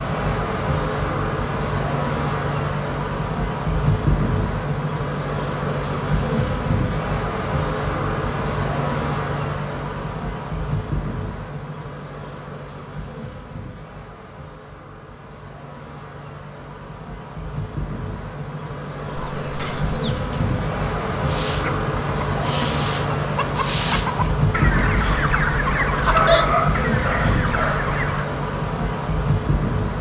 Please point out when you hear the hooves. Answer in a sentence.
You can't hear the hooves here.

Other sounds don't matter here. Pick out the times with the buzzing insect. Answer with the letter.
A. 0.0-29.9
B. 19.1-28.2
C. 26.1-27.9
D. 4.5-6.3
A.